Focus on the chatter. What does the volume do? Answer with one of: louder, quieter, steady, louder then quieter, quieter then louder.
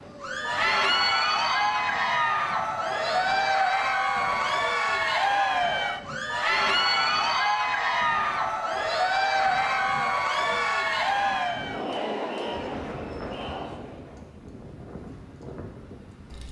quieter.